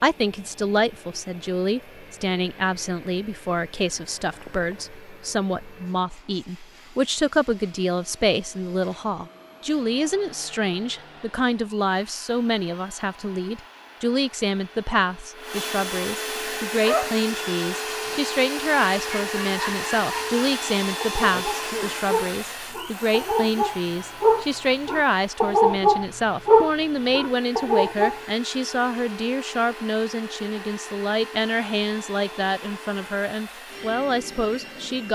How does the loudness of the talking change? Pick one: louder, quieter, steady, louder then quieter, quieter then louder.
steady.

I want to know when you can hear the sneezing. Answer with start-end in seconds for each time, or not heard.
4.3-5.0, 21.3-21.9.